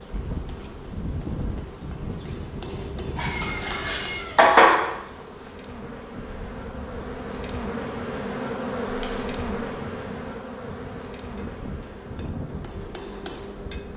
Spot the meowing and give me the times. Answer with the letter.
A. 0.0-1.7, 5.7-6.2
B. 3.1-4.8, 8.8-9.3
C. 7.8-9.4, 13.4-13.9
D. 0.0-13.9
B.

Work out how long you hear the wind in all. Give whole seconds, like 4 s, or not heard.
14 s.